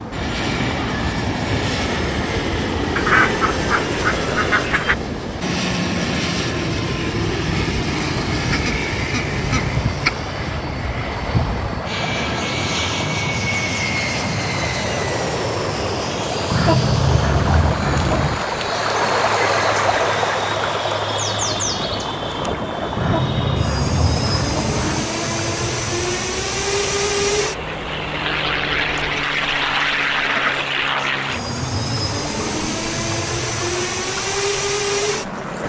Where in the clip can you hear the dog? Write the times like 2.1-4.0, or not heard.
not heard.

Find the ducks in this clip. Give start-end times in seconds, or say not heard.
3.0-5.0, 8.5-10.1, 16.5-18.4, 22.9-25.1, 28.8-30.7.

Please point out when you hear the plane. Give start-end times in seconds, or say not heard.
0.0-35.6.